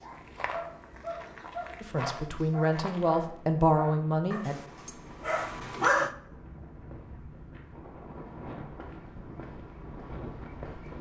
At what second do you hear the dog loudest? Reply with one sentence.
The loudest moment of the dog is at 6 seconds.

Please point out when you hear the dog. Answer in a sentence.
You can hear the dog from 0.0 to 6.1 s.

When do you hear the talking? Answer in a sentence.
The talking can be heard from 1.8 to 4.5 s.